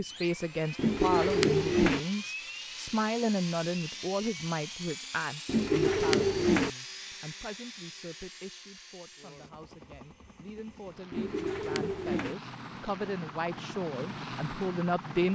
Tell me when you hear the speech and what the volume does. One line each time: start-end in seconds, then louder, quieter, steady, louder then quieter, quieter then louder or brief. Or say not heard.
0.0-15.2 quieter then louder.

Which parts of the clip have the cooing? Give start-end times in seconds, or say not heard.
0.8-2.0, 5.5-6.7, 11.1-12.3.